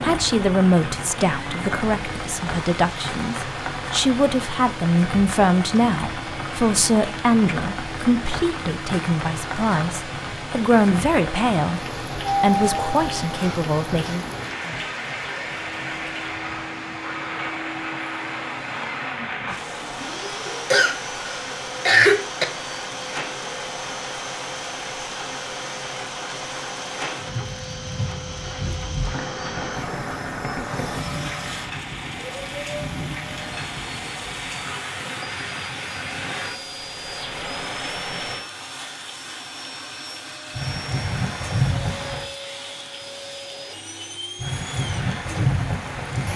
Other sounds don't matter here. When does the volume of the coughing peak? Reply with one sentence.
The volume of the coughing peaks at 22 seconds.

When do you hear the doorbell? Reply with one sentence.
You can hear the doorbell from 12.2 to 13.6 s.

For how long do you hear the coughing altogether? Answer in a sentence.
The coughing can be heard for 2 seconds in total.